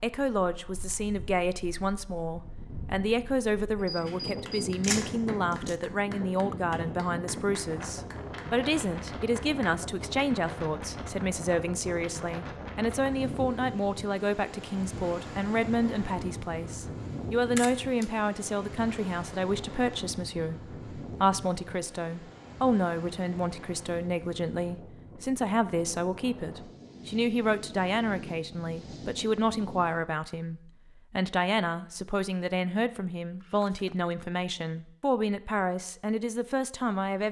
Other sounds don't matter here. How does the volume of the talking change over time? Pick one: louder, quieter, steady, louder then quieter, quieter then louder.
steady.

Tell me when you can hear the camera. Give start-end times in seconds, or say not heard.
3.8-5.8, 17.6-18.1, 33.4-34.1.